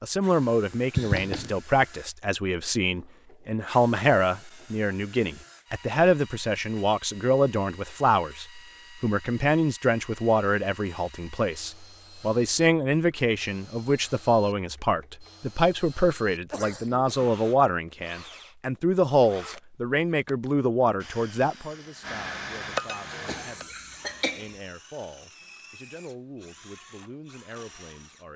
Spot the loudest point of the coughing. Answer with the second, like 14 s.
1 s.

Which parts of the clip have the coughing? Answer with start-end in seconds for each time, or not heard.
0.9-1.6, 16.5-17.3, 23.2-24.5.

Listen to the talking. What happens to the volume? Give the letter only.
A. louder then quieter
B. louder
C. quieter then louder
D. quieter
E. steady
D.